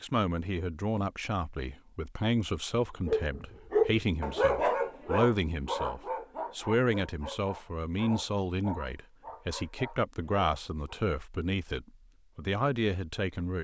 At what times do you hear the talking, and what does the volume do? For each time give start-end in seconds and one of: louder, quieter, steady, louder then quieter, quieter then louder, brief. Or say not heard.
0.0-13.6 steady.